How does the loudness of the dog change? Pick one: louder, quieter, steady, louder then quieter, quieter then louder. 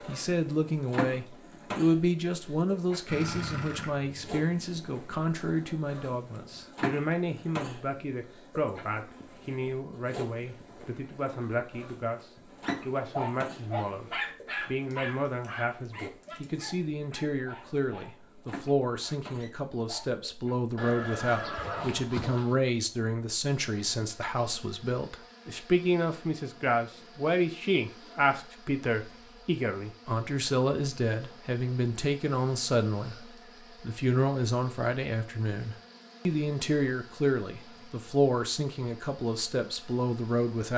quieter.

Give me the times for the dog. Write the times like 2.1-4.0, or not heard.
12.4-20.2.